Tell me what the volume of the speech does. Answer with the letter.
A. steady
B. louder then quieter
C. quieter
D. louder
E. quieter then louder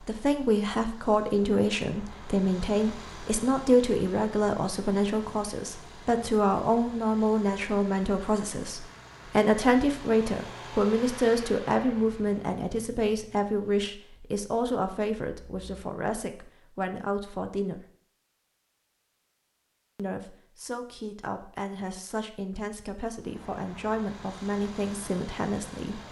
C.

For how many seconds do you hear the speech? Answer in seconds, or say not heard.
24 s.